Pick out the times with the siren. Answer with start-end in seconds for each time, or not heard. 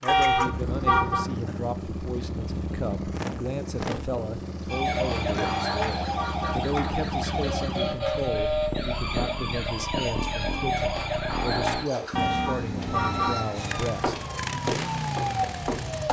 4.7-16.0.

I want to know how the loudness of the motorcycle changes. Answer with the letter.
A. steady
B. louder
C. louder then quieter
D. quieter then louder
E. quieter
A.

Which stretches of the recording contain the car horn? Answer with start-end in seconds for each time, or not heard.
0.1-1.2, 5.3-6.7, 12.2-13.4.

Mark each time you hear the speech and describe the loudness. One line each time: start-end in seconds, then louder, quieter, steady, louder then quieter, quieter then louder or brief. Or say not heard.
0.0-14.2 steady.